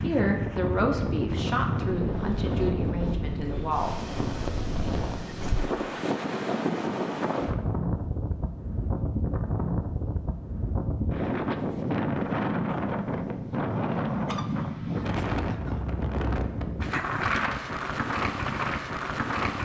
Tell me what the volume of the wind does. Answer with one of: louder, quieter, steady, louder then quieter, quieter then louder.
steady.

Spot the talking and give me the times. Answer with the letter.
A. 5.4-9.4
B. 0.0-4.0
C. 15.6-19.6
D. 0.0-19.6
B.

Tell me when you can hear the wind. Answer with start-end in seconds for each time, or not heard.
0.0-19.6.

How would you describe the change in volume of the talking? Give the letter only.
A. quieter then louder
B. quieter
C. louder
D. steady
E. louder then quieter
B.